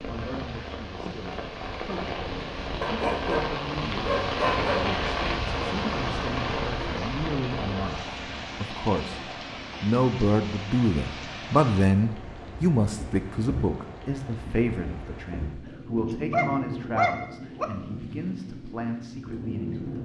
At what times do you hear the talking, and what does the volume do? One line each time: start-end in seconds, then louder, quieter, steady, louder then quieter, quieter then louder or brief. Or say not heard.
0.1-8.0 louder
8.6-9.2 brief
9.8-20.0 quieter.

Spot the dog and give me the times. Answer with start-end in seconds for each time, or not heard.
2.8-4.8, 15.7-17.6.